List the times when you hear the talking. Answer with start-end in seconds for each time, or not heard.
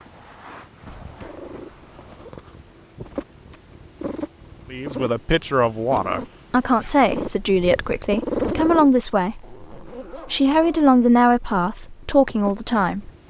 4.7-13.1.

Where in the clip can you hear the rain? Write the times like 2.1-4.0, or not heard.
not heard.